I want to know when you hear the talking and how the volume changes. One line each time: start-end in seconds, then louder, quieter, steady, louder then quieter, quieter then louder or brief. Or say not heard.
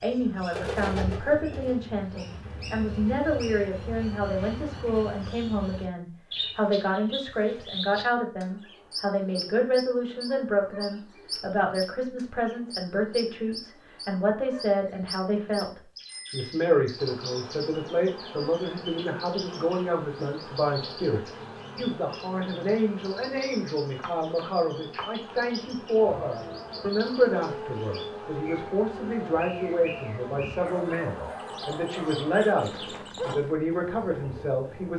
0.0-34.9 steady.